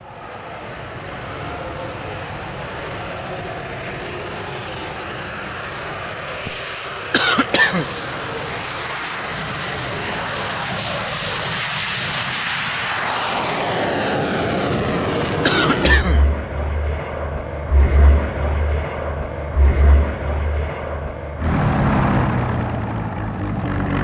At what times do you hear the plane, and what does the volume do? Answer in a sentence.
You can hear the plane from 0.0 to 23.9 s, getting louder.